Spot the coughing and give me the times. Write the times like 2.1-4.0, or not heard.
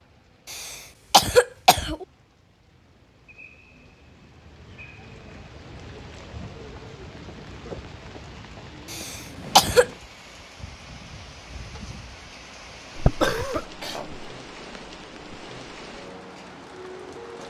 0.5-2.0, 8.9-9.8, 12.9-14.2.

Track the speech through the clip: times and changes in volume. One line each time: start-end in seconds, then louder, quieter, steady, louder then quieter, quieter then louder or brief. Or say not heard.
not heard.